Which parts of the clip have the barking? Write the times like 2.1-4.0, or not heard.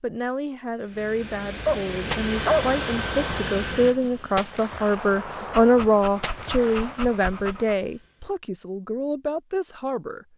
1.6-2.8, 5.5-7.8.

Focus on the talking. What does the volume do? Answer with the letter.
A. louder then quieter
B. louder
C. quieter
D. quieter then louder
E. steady
A.